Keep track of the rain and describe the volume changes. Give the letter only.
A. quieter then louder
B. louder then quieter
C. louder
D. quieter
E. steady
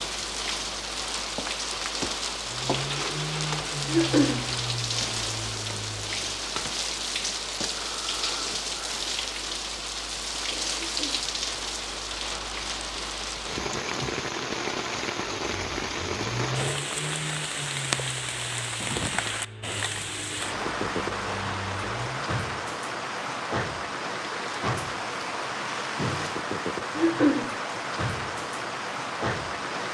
E.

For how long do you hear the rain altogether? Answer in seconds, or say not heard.
30 s.